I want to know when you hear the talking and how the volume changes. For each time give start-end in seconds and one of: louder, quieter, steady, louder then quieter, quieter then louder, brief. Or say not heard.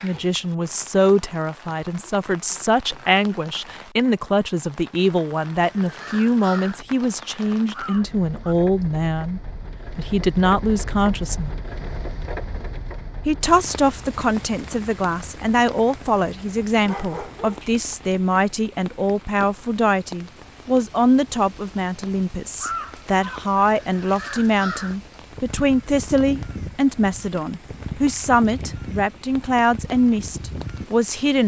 0.0-11.5 steady
13.2-31.4 steady.